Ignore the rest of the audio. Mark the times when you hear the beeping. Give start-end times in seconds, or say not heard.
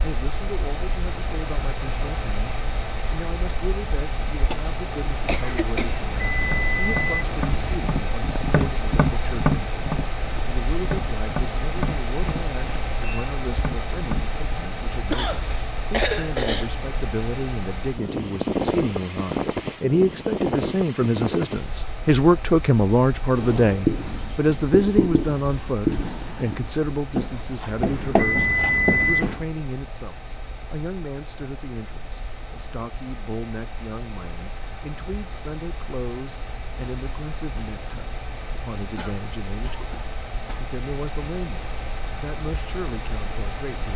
6.0-7.8, 27.8-29.4.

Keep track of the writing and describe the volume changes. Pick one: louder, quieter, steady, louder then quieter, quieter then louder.
steady.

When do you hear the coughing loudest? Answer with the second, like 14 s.
16 s.